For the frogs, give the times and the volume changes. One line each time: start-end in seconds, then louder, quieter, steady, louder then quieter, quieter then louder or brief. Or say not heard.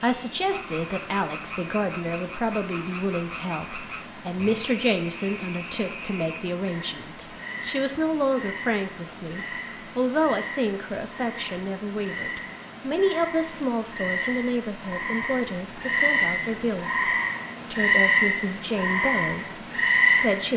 0.0-20.5 louder.